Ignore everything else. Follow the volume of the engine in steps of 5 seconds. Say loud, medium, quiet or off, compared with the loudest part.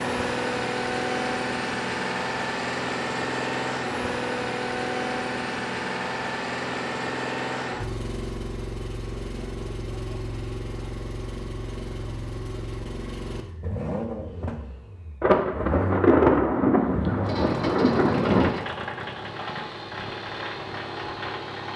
loud, loud, medium, medium, medium.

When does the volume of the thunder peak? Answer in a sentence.
The loudest moment of the thunder is at 16 seconds.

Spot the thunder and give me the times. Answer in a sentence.
The thunder can be heard from 15.2 to 18.6 s.